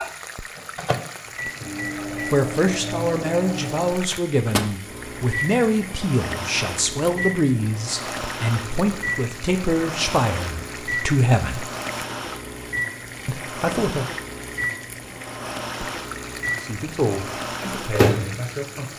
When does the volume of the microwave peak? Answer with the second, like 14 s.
18 s.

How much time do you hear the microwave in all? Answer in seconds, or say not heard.
19 s.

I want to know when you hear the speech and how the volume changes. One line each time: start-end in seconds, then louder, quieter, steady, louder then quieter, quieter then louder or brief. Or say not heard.
2.3-11.7 steady
13.2-14.1 brief
16.6-18.9 brief.